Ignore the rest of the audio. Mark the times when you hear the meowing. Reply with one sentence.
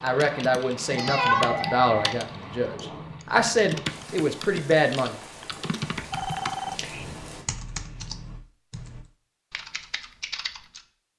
You can hear the meowing from 0.9 to 1.8 s.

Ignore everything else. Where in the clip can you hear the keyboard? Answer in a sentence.
You can hear the keyboard from 0.0 to 10.8 s.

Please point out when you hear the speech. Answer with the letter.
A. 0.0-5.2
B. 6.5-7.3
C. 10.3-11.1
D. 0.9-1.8
A.